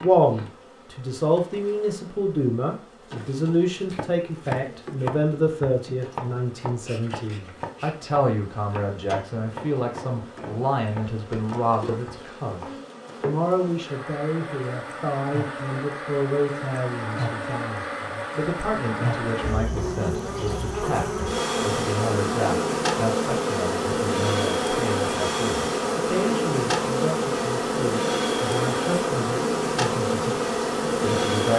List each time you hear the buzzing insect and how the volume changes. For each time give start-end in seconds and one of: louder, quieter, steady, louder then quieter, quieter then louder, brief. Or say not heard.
0.0-31.5 louder.